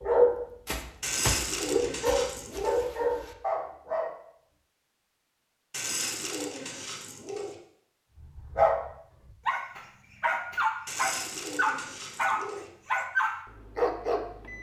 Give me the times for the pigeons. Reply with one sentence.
The pigeons can be heard from 1.0 to 2.9 s, from 5.7 to 7.5 s and from 10.8 to 12.7 s.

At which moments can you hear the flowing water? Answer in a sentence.
You can't hear the flowing water here.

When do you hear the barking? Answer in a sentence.
You can hear the barking from 0.0 to 4.2 s and from 8.2 to 14.5 s.